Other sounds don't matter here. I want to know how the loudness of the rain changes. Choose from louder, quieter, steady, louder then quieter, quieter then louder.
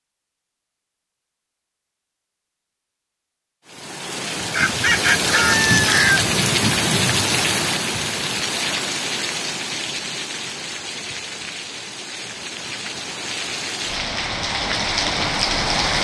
quieter then louder.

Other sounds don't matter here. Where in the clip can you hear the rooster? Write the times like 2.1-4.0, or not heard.
4.3-6.3.